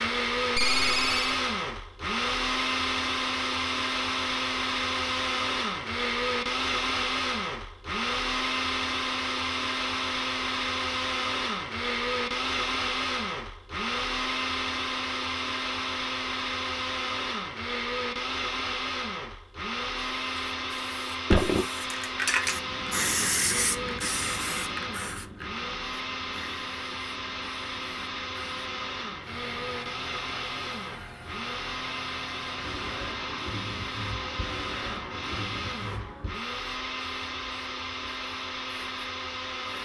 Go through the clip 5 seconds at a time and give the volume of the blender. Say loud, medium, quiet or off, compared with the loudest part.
loud, loud, loud, loud, medium, medium, medium, medium.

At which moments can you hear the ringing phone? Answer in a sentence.
You can hear the ringing phone from 0.6 to 1.4 s.